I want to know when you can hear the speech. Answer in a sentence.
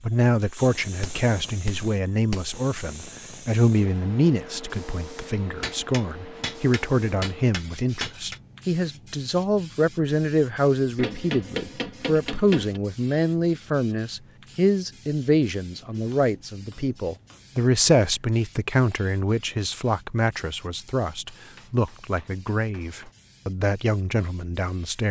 The speech can be heard from 0.0 to 25.0 s.